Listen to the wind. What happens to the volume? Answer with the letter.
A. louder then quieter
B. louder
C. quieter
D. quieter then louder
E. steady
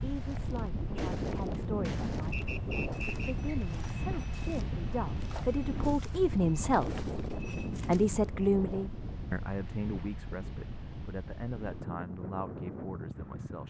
C.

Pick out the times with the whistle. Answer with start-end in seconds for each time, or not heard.
2.3-3.5.